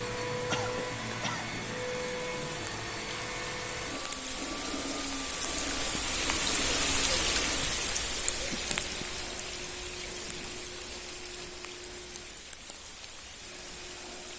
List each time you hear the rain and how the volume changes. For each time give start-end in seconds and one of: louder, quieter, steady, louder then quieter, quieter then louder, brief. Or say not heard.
0.0-14.3 louder then quieter.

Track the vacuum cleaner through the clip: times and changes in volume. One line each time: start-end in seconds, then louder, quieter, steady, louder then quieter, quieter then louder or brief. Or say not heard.
0.0-14.3 quieter.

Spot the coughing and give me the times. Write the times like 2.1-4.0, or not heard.
0.5-1.6.